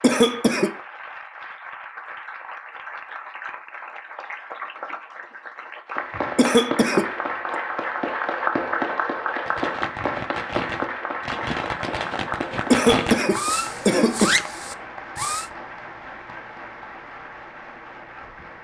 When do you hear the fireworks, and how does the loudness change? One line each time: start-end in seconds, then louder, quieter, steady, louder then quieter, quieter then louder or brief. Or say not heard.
9.4-15.5 louder.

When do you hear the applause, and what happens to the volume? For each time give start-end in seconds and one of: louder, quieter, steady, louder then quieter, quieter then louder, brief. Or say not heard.
0.0-18.5 louder then quieter.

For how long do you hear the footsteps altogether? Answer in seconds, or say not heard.
not heard.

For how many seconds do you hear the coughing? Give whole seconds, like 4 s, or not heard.
3 s.